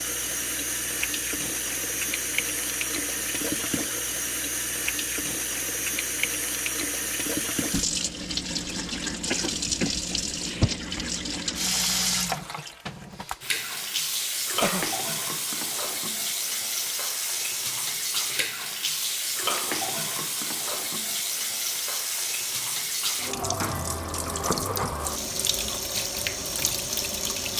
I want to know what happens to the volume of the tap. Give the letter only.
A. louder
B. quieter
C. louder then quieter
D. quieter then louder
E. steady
E.